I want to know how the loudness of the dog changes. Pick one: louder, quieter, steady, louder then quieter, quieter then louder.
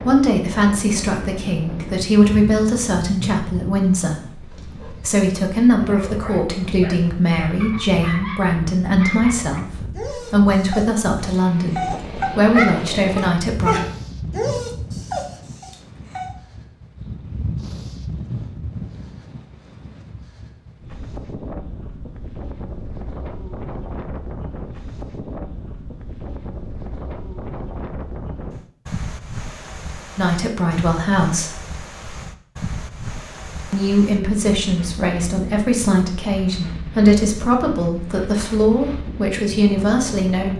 louder.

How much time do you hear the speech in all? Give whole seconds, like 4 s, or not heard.
22 s.